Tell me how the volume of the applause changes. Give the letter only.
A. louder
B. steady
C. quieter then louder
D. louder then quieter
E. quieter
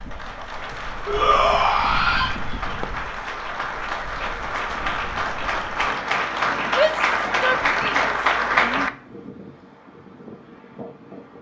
A.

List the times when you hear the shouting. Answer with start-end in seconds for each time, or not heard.
1.1-2.4, 6.7-8.9.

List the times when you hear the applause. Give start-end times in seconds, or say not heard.
0.0-8.9.